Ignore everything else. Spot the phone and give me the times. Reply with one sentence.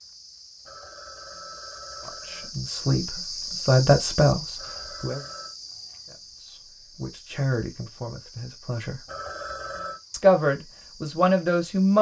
The phone can be heard from 0.7 to 2.5 s, from 4.5 to 5.5 s and from 9.1 to 10.0 s.